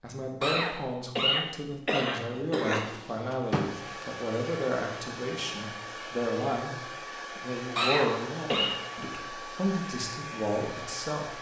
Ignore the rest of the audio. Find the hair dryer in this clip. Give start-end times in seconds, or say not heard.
3.3-11.3.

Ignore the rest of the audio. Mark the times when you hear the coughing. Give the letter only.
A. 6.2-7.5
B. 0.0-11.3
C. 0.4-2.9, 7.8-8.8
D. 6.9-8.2
C.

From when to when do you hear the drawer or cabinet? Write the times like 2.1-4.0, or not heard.
2.7-4.0.